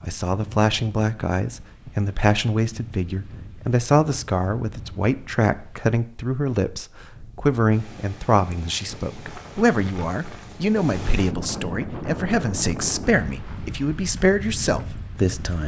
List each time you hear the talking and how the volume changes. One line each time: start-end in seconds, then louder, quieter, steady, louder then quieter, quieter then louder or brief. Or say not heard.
0.0-15.6 steady.